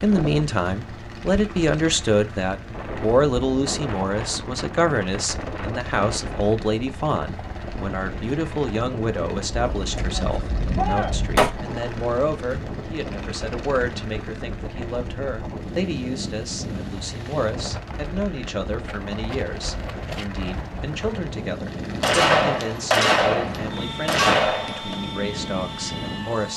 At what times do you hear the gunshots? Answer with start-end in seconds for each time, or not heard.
9.5-11.5, 22.0-24.9.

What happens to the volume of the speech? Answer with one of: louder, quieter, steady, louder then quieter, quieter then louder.
quieter.